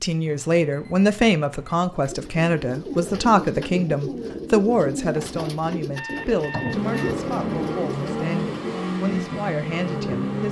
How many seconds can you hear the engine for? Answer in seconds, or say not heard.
4 s.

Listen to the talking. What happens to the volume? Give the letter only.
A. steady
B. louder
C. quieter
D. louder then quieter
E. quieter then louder
C.